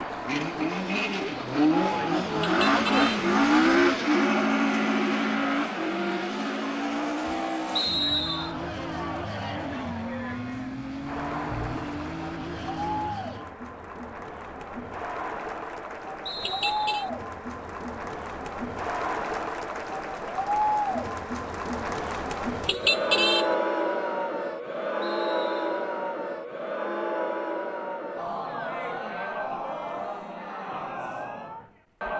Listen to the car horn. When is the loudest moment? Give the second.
23 s.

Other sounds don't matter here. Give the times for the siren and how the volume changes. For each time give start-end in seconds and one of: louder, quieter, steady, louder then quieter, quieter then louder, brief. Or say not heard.
not heard.